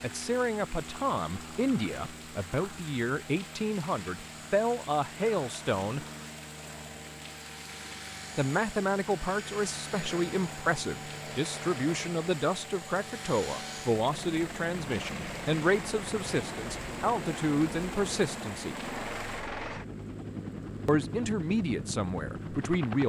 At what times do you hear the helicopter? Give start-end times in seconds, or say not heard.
0.0-23.0.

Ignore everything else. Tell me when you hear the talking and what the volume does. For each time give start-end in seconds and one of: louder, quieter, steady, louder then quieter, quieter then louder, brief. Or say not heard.
0.0-6.0 steady
8.3-18.8 steady
20.9-23.0 brief.